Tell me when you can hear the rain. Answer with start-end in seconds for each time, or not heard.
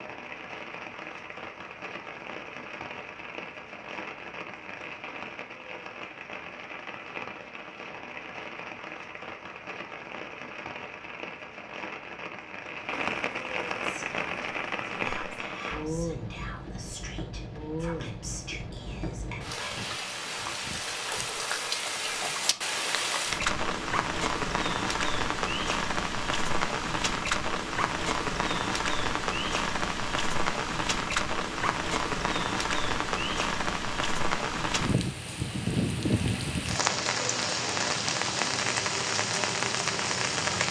0.0-40.6.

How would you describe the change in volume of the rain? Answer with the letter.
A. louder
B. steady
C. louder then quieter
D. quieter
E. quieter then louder
A.